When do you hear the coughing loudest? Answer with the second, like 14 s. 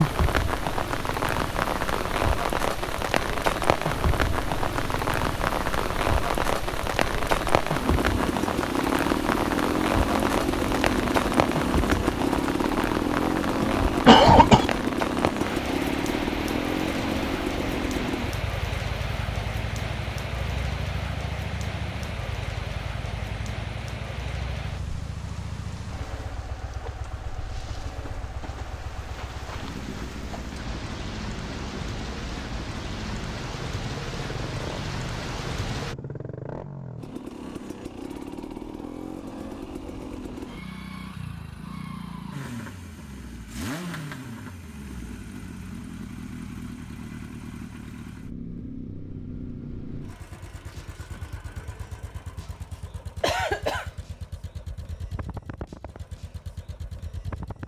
14 s.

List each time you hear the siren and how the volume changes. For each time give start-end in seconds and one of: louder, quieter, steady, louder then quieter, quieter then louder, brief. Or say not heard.
not heard.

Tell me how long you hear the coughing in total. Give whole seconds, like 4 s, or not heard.
2 s.